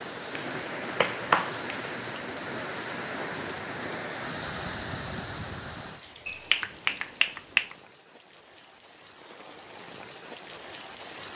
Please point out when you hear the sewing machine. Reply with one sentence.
You can't hear the sewing machine here.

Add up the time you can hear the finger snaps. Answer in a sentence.
The finger snaps can be heard for 3 seconds in total.